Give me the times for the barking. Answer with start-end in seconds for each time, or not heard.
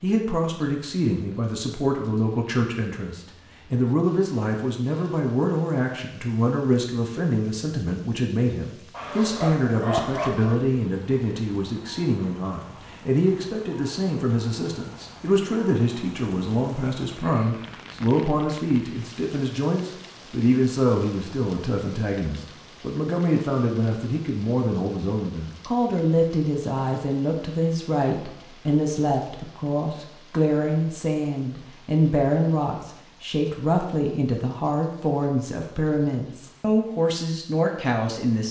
8.9-10.6.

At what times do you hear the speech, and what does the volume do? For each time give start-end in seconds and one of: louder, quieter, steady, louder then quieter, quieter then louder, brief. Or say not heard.
0.0-38.4 steady.